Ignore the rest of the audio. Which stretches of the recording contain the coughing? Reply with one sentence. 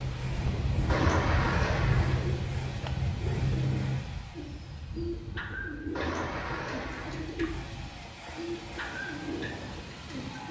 The coughing can be heard from 0.8 to 2.4 s and from 6.0 to 7.3 s.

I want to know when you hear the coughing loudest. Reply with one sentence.
The loudest moment of the coughing is at 1 second.